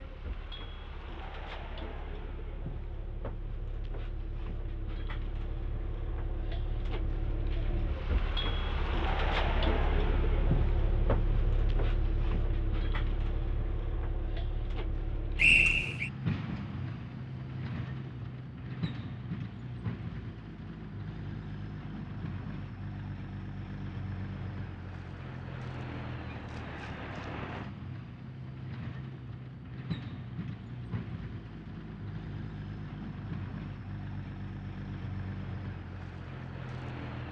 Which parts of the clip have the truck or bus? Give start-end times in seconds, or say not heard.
0.0-37.2.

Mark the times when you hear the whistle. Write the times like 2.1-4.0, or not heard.
15.3-16.1.